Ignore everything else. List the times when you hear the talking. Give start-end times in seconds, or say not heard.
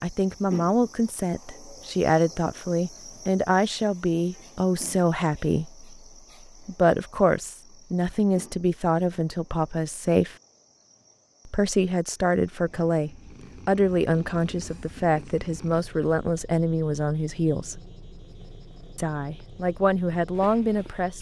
0.0-5.8, 6.7-10.3, 11.4-17.8, 18.9-21.1.